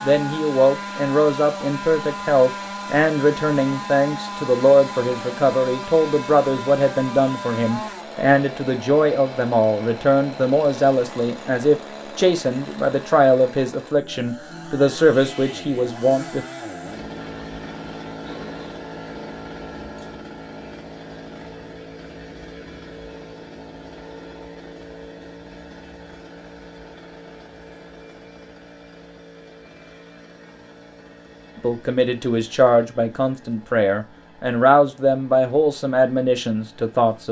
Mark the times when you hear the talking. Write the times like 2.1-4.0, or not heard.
0.0-16.4, 31.6-37.2.